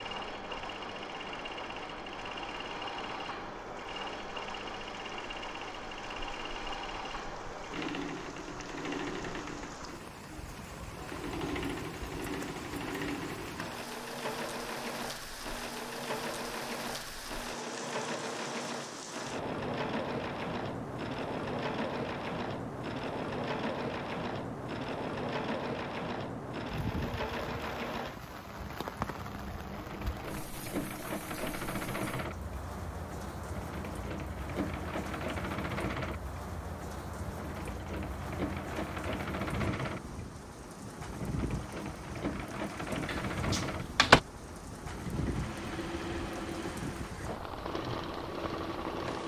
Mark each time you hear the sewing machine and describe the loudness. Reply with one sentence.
The sewing machine can be heard from 0.0 to 49.2 s, at a steady volume.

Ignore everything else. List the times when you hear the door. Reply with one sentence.
You can hear the door from 43.0 to 44.2 s.